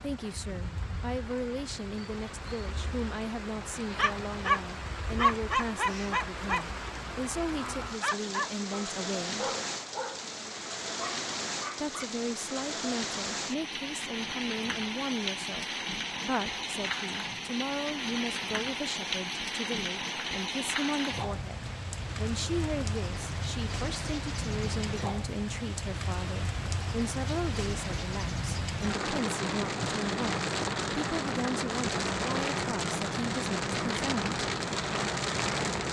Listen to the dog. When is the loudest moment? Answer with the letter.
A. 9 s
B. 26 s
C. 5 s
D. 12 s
C.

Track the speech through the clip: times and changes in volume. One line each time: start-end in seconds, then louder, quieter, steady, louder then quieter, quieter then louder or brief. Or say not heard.
0.0-9.5 steady
11.8-34.3 steady.